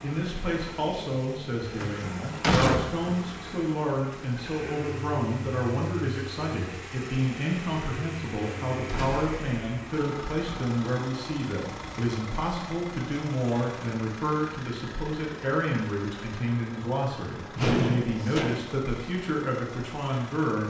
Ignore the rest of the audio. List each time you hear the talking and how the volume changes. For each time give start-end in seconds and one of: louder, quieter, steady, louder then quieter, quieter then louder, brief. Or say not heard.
0.0-20.6 steady.